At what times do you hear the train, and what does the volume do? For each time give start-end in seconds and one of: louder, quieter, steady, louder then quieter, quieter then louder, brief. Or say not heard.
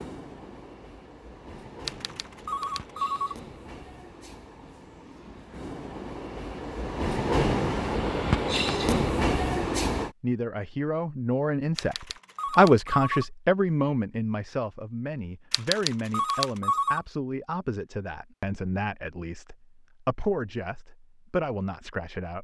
0.0-10.1 louder.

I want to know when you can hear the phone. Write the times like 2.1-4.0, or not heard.
1.9-3.4, 11.8-13.2, 15.5-17.0.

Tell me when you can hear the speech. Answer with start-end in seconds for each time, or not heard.
10.2-22.4.